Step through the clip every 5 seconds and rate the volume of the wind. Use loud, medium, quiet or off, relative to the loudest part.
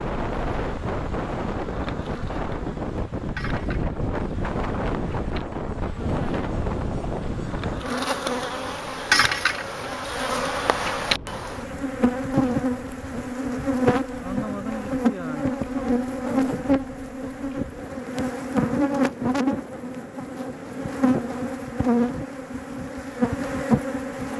loud, loud, quiet, quiet, quiet.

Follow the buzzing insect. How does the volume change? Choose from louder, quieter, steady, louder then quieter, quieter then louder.
louder.